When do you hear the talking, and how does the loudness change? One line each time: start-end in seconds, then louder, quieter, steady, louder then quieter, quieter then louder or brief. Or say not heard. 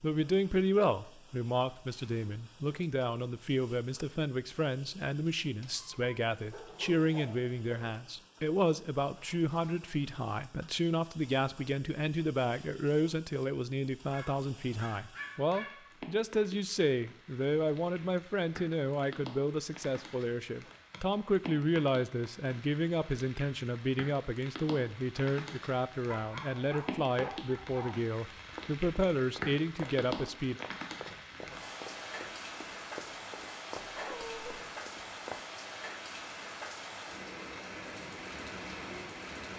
0.0-30.6 steady.